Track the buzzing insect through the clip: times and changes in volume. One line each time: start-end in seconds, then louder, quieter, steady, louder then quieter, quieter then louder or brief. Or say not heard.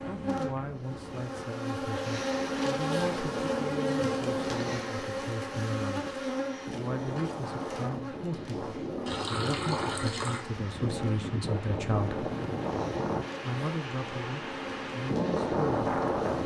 0.0-16.4 quieter.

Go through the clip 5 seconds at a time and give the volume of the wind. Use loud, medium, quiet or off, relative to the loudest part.
quiet, medium, medium, loud.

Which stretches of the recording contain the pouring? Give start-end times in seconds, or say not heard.
9.1-10.4.